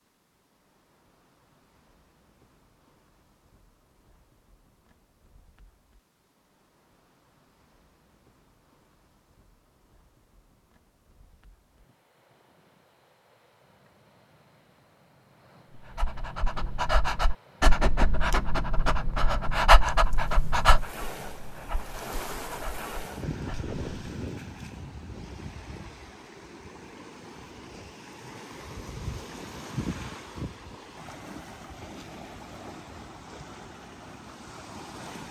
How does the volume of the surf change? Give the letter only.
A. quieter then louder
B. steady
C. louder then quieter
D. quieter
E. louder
E.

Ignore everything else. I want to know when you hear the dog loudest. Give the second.
20 s.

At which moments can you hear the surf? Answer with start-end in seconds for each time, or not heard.
0.0-35.2.